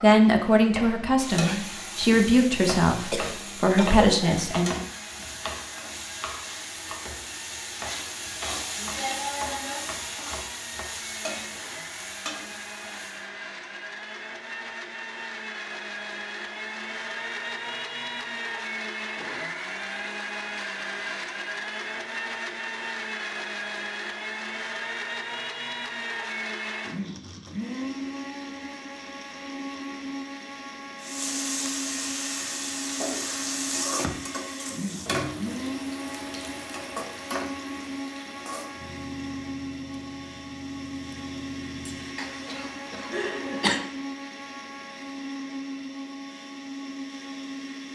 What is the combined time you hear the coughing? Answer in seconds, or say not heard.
3 s.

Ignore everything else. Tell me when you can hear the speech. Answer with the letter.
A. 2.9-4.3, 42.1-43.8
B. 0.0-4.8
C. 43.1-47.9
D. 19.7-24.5
B.